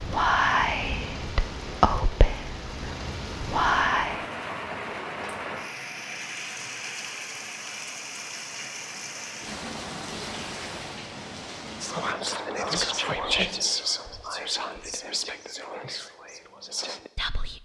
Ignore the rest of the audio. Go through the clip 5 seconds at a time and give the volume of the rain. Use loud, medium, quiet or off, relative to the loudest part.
loud, loud, loud, off.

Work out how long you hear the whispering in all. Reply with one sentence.
The whispering can be heard for 10 seconds in total.